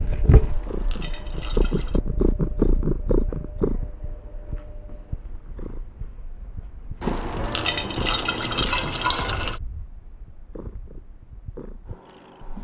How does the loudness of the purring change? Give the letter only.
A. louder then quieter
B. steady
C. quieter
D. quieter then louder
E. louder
C.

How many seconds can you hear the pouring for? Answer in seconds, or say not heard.
4 s.